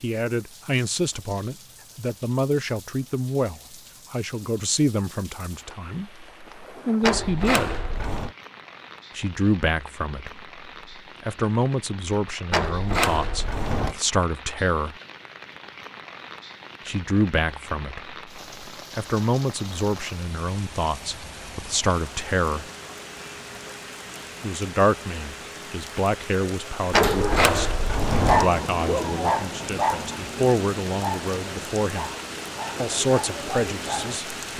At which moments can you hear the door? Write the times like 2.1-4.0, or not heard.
7.0-8.3, 12.5-13.9, 26.9-28.5.